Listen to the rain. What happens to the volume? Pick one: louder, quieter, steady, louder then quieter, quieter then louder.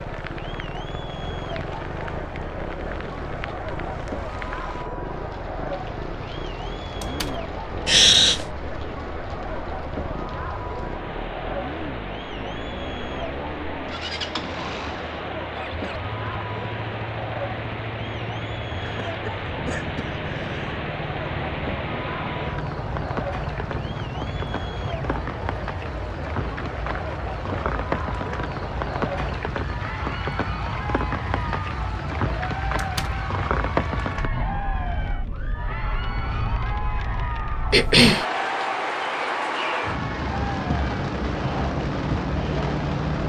louder.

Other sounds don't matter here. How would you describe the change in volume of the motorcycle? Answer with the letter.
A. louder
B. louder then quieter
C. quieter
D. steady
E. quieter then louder
D.